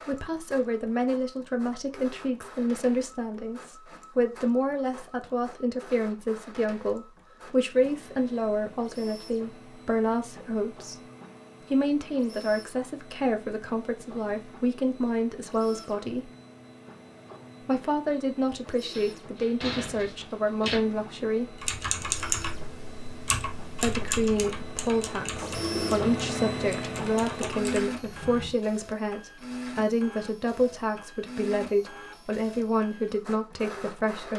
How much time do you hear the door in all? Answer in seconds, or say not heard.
2 s.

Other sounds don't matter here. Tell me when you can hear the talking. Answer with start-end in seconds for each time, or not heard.
0.1-11.0, 11.7-16.3, 17.6-21.6, 23.8-34.3.